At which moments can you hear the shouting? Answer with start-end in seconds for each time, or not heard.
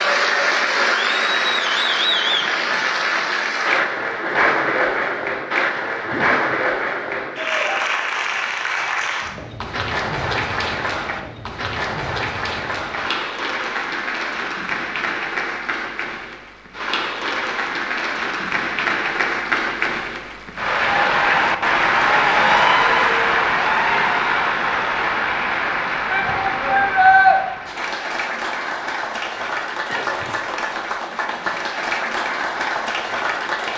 26.1-27.4.